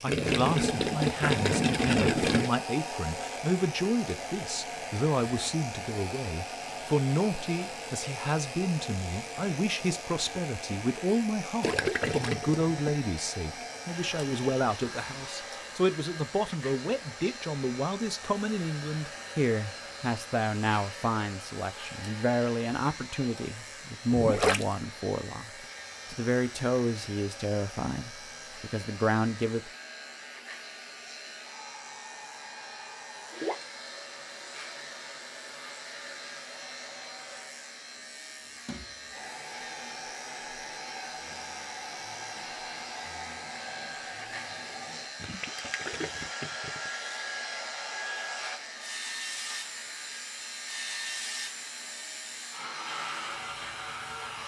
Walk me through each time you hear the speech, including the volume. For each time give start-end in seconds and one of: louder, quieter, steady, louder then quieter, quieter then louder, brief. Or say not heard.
0.0-29.7 steady.